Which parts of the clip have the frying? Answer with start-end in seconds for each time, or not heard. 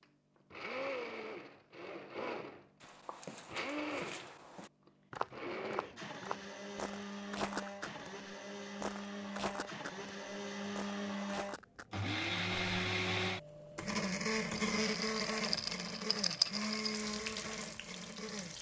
16.8-18.5.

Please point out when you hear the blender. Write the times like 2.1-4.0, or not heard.
0.0-18.5.